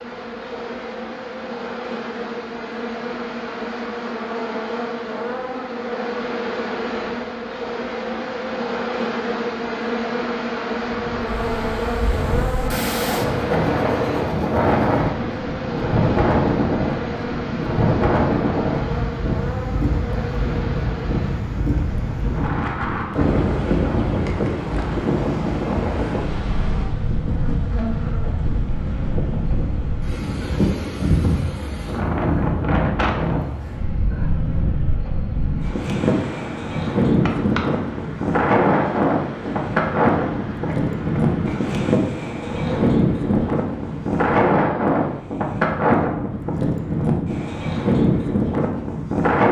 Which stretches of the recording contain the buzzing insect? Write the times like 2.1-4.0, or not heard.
0.0-45.2.